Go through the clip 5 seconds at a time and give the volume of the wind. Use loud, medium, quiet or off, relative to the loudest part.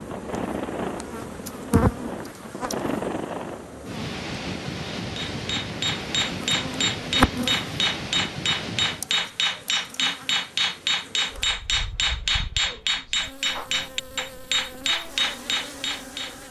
loud, loud, quiet, quiet.